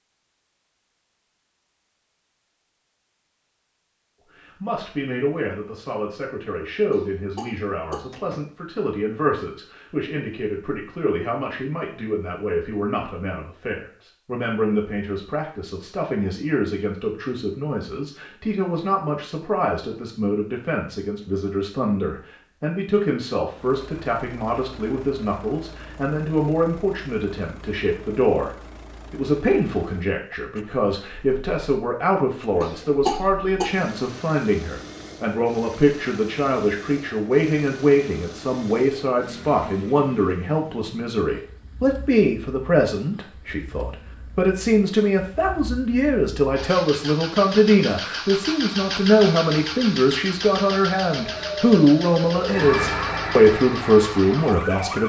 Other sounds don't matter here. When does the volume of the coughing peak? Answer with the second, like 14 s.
33 s.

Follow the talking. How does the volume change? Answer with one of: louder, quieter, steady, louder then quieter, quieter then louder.
louder.